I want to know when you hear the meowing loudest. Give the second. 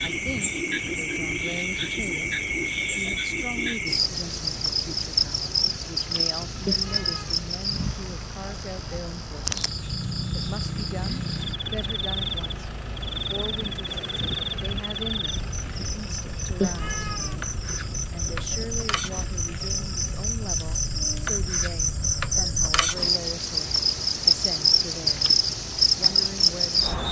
17 s.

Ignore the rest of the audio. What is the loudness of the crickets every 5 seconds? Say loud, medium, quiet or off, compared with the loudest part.
medium, medium, medium, medium, loud, loud.